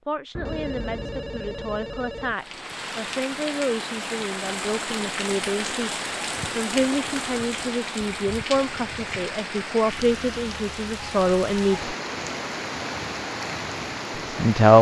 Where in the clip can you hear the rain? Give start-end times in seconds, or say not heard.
2.2-14.7.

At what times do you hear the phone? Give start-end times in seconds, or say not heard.
0.3-2.4.